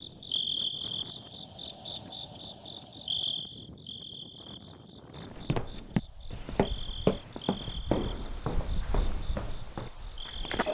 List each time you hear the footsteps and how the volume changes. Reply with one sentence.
You can hear the footsteps from 5.3 to 10.7 s, getting quieter.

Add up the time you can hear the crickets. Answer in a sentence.
The crickets can be heard for 11 seconds in total.